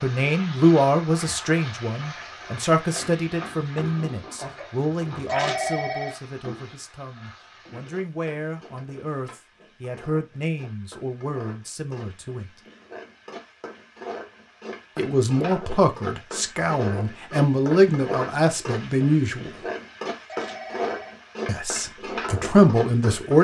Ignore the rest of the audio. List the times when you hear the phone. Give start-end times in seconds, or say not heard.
5.2-6.2, 20.2-21.1.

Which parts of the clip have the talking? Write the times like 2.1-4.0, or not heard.
0.0-12.4, 14.9-19.5, 21.4-23.3.